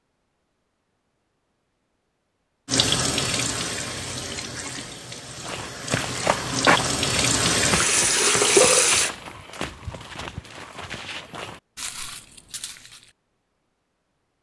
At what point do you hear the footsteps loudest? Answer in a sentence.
The loudest moment of the footsteps is at 7 seconds.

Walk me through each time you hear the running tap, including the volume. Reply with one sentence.
You can hear the running tap from 2.6 to 9.1 s, getting quieter then louder.